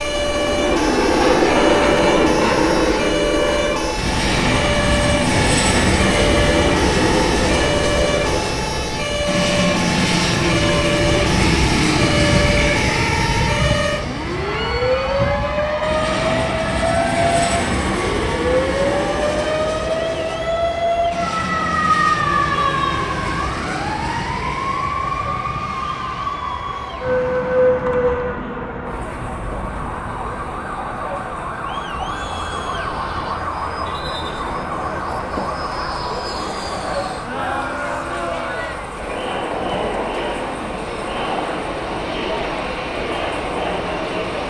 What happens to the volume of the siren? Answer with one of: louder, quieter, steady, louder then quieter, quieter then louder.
quieter.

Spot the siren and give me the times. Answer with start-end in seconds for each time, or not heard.
0.0-44.4.